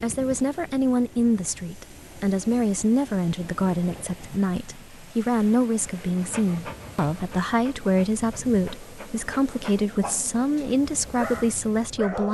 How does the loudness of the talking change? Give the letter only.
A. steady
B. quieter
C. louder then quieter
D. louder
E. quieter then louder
A.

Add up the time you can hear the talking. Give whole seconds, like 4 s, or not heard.
12 s.